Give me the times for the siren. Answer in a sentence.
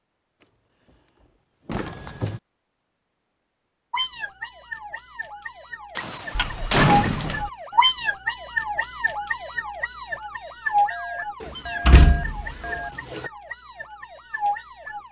You can hear the siren from 3.9 to 15.0 s.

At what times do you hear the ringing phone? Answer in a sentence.
The ringing phone can be heard from 1.8 to 2.4 s, from 6.3 to 7.5 s and from 10.9 to 12.9 s.